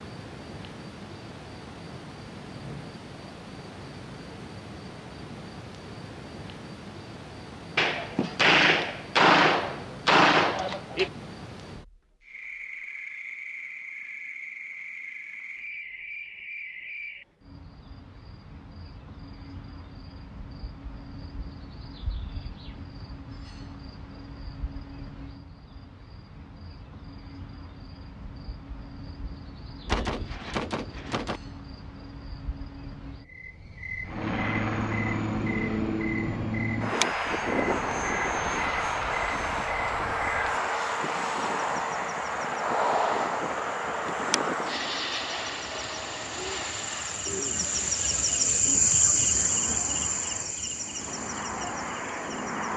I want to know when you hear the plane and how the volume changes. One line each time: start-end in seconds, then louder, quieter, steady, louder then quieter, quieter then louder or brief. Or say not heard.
34.0-52.7 quieter.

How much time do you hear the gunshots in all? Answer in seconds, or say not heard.
5 s.